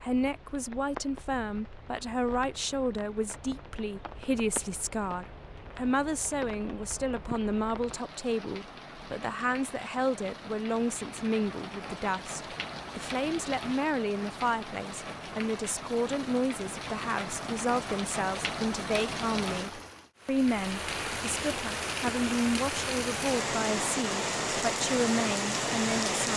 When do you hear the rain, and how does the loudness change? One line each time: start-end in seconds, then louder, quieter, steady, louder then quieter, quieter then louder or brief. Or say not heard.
0.0-26.3 louder.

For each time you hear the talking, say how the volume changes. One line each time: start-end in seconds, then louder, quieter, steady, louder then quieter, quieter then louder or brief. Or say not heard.
0.0-26.3 steady.